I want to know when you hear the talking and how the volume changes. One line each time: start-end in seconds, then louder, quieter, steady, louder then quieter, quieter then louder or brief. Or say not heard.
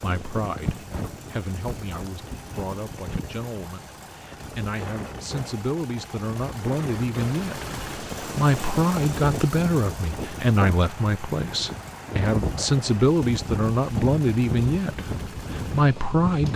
0.0-16.5 louder.